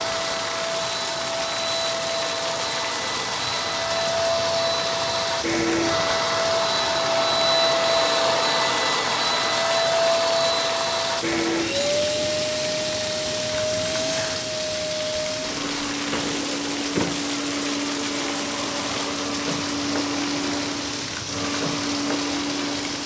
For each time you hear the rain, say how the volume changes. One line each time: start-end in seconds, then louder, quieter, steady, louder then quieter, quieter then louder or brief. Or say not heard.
0.0-23.0 steady.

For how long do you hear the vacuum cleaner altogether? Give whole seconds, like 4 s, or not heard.
23 s.